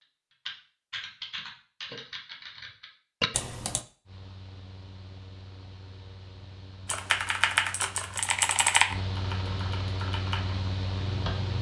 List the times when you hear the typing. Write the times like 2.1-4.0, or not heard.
0.5-3.8, 6.8-11.5.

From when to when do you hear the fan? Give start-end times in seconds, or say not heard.
4.0-11.5.